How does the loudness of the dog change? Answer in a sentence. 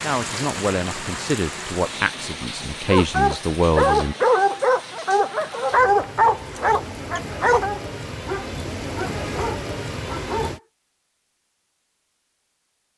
The volume of the dog goes down.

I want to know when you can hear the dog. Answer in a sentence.
You can hear the dog from 2.9 to 10.6 s.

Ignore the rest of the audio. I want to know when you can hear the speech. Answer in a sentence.
The speech can be heard from 0.0 to 4.2 s.